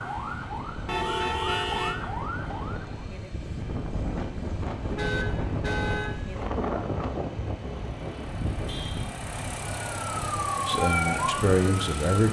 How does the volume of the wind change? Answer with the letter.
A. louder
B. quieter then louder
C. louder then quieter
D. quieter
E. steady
C.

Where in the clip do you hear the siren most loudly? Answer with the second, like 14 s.
11 s.